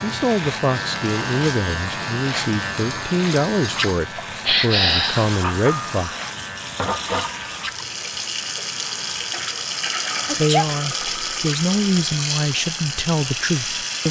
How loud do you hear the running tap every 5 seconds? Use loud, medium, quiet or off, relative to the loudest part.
medium, loud, loud.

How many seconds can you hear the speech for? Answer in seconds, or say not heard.
10 s.